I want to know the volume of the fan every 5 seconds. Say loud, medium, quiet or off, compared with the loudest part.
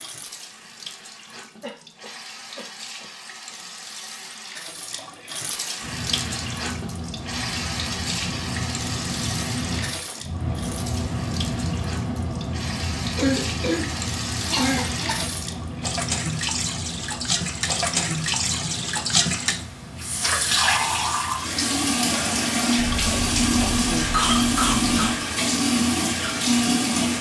off, loud, loud, medium, medium, medium.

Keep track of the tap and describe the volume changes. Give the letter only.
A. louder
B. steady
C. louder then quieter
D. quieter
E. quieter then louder
A.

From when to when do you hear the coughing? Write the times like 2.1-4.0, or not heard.
1.6-3.5, 13.2-15.2, 22.8-25.2.